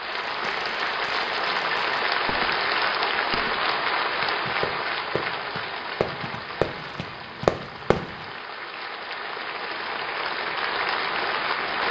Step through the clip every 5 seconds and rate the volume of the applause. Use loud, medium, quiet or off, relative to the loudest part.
loud, medium, loud.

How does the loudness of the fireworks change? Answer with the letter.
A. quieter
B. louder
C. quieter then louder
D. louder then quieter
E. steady
B.